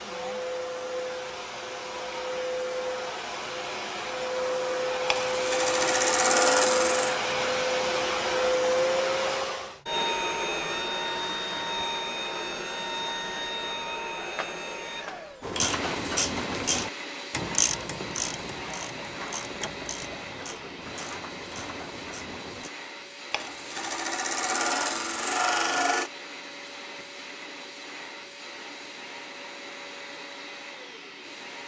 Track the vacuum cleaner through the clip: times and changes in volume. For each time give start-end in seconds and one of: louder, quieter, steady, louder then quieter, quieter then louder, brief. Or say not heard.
0.0-31.6 quieter.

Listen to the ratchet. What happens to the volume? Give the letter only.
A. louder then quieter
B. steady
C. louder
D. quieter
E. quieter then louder
D.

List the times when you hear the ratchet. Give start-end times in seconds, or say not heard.
15.4-22.7.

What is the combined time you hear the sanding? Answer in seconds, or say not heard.
5 s.